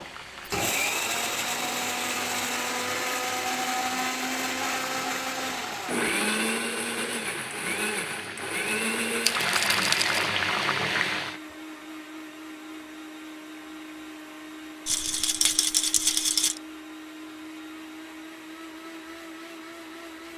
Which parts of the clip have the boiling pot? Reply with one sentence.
You can hear the boiling pot from 0.0 to 11.4 s.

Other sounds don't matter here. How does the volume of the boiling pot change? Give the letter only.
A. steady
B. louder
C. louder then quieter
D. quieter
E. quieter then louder
B.